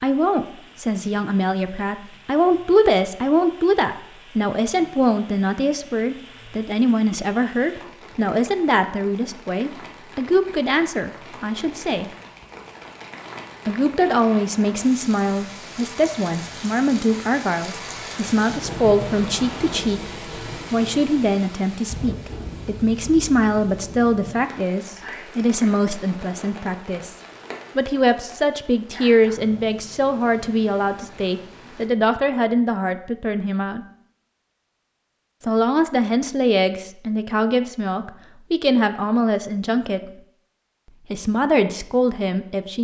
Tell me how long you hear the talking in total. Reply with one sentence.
The talking can be heard for 37 seconds in total.